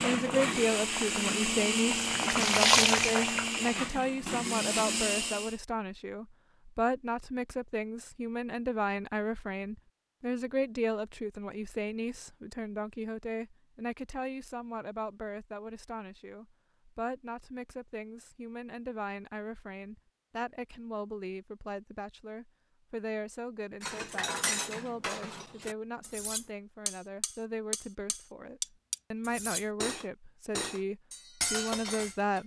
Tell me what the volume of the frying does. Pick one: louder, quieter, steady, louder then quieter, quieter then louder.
louder then quieter.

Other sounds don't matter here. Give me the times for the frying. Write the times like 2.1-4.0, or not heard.
0.0-4.1.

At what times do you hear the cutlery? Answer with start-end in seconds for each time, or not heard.
23.8-32.4.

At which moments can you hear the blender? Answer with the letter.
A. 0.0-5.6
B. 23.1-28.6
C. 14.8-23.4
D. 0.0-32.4
A.